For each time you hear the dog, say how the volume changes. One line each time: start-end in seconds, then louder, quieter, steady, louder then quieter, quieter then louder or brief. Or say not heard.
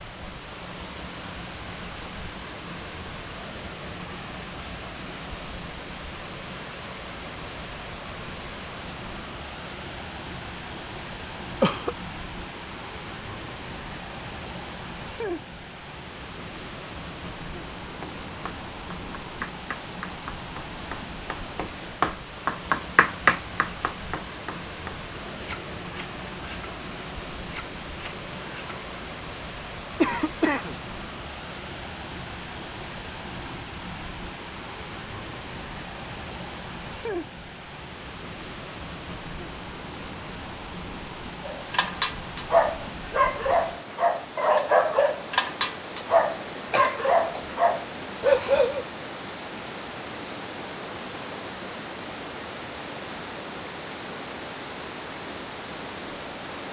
41.5-48.9 steady.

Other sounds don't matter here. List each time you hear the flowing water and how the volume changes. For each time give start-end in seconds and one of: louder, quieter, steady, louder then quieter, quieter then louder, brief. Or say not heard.
0.0-56.6 steady.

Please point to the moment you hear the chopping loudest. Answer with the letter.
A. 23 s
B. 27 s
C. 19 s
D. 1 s
A.